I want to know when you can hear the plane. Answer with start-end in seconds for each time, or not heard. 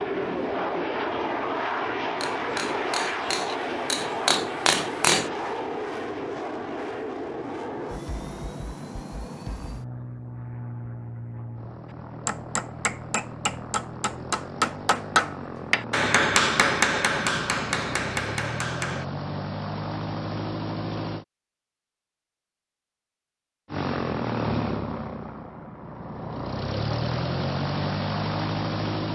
0.0-21.2, 23.6-29.0.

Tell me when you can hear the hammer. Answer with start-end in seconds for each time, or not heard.
2.2-5.3, 12.2-19.1.